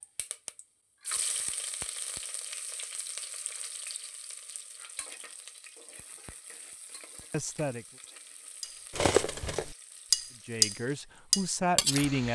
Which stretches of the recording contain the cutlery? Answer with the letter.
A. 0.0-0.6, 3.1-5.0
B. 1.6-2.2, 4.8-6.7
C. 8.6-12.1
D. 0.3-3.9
C.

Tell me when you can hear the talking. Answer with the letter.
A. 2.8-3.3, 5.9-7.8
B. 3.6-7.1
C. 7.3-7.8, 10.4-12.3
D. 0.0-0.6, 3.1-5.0
C.